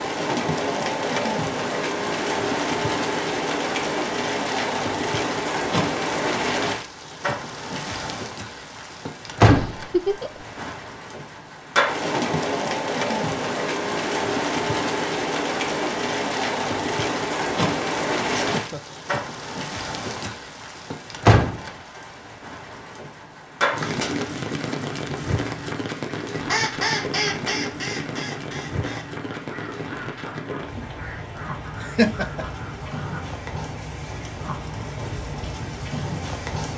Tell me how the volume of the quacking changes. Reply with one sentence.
The loudness of the quacking goes down.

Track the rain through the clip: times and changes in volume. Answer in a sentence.
You can hear the rain from 0.0 to 36.7 s, getting quieter.